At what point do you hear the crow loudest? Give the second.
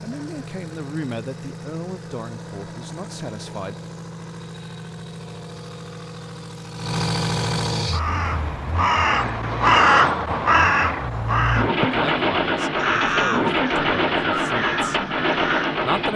10 s.